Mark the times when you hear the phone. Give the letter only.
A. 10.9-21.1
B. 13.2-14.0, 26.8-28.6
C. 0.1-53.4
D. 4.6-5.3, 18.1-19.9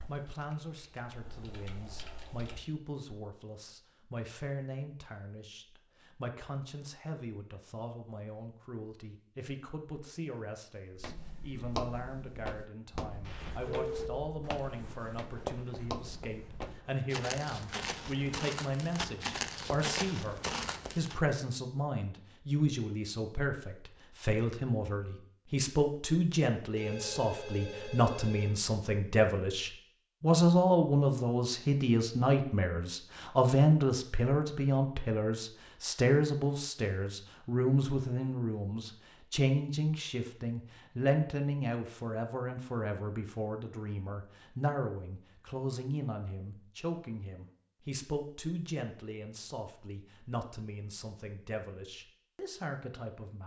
B.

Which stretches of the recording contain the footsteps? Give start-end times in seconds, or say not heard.
10.9-21.1.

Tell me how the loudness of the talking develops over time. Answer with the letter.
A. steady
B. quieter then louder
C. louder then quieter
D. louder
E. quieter
C.